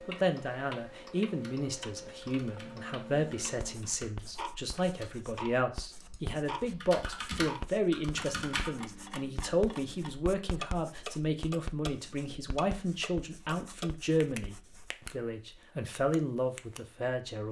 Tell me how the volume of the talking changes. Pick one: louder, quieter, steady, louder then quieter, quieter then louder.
steady.